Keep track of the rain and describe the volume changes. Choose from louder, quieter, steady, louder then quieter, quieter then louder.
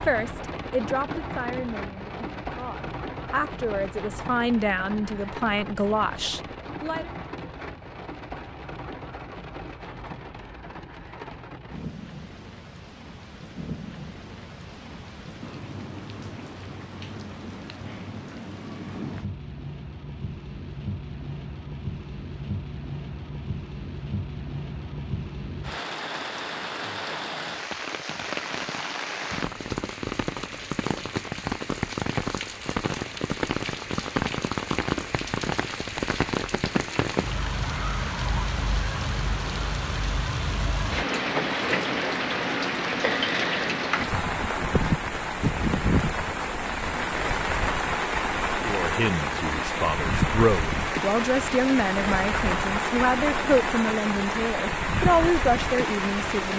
louder.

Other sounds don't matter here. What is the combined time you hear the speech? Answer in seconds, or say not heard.
15 s.